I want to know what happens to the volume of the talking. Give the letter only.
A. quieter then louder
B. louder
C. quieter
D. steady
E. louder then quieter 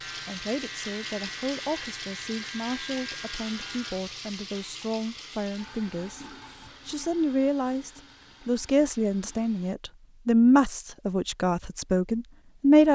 B.